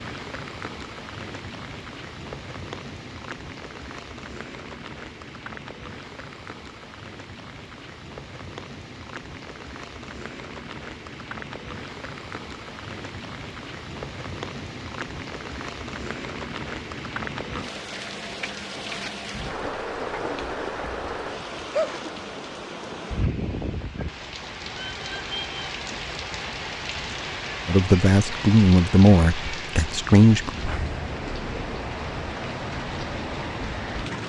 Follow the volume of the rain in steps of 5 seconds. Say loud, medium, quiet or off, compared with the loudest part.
medium, medium, medium, loud, loud, loud, loud.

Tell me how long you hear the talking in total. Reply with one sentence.
The talking can be heard for 3 seconds in total.